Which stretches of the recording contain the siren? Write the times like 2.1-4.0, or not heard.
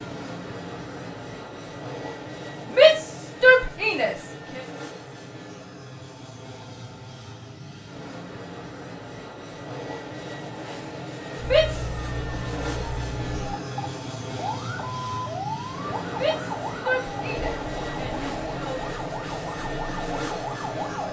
11.3-21.0.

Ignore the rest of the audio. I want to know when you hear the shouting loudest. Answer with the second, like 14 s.
3 s.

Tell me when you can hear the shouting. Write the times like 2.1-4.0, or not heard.
2.8-4.6, 11.4-11.8, 16.1-18.8.